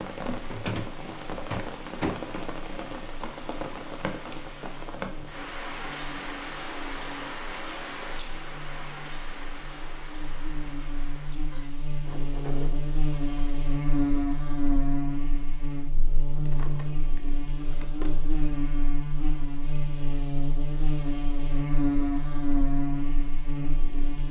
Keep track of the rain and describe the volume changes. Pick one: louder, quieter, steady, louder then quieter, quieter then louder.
quieter.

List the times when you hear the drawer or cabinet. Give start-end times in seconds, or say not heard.
0.5-2.3, 12.1-12.9, 16.4-18.1.